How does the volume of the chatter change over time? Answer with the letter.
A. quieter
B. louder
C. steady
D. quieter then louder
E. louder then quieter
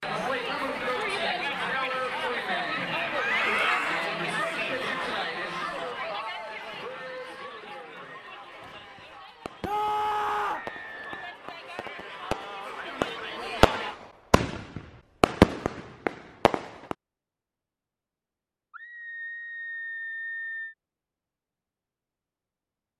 D.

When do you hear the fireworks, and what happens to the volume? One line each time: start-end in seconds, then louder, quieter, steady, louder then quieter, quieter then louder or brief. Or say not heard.
8.6-16.9 louder.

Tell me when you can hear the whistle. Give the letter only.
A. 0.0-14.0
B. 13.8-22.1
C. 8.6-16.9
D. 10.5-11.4
D.